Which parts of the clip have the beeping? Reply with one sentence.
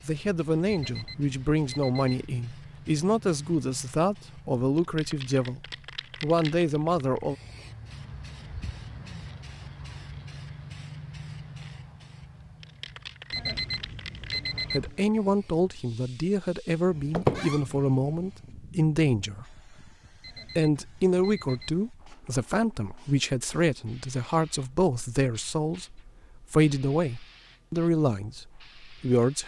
The beeping can be heard from 0.7 to 2.1 s, from 13.3 to 15.0 s and from 20.2 to 21.9 s.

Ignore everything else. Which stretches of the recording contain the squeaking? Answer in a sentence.
The squeaking can be heard from 17.1 to 17.6 s.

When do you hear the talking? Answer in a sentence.
You can hear the talking from 0.0 to 5.6 s, from 6.2 to 7.3 s, from 14.7 to 19.6 s and from 20.6 to 29.4 s.